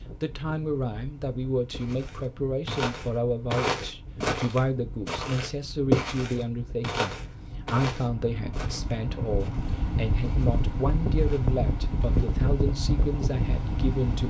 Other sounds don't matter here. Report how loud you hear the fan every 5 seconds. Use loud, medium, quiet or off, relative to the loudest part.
quiet, medium, loud.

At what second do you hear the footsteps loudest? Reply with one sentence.
The volume of the footsteps peaks at 6 seconds.